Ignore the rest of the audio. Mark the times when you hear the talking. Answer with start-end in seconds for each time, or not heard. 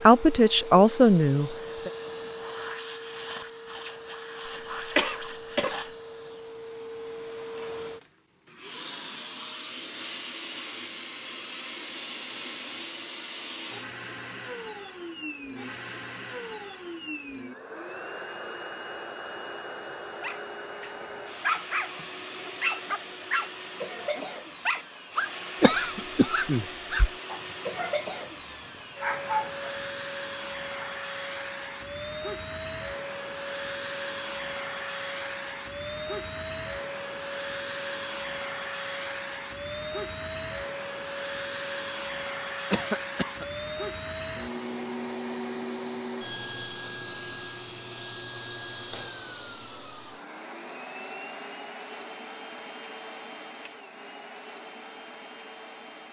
0.0-1.9.